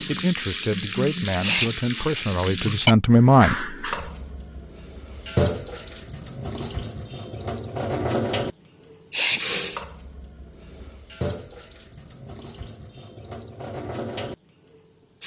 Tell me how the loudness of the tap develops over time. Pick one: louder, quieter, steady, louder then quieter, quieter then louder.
quieter.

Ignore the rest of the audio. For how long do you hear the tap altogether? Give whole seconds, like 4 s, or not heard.
15 s.